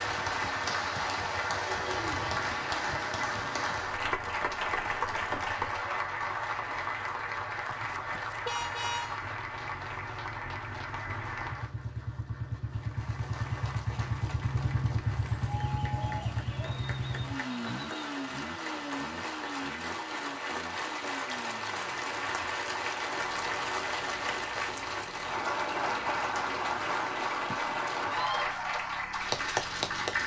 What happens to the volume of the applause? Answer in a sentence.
The loudness of the applause goes down, then up.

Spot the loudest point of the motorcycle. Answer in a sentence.
The volume of the motorcycle peaks at 15 seconds.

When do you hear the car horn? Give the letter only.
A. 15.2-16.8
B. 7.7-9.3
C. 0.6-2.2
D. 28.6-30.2
B.